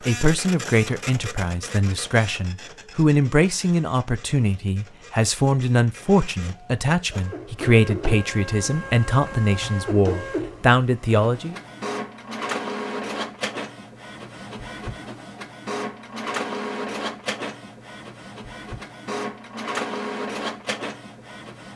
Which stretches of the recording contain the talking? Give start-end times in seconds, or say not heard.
0.1-11.6.